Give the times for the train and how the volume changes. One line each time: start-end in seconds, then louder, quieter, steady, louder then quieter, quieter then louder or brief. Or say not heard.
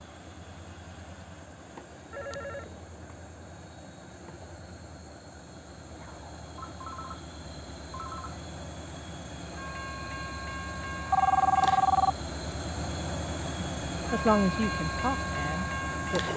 0.0-16.3 louder.